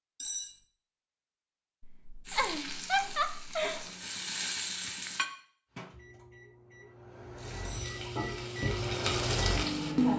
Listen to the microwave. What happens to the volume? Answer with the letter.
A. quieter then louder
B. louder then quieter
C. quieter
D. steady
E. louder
E.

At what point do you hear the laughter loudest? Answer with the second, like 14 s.
3 s.